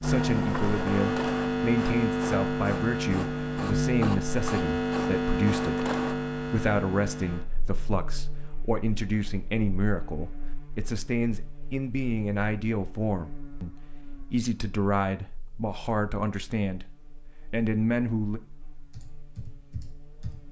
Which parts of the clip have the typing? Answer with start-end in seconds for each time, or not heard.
18.9-20.4.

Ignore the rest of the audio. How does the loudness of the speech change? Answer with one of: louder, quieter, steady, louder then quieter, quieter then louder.
steady.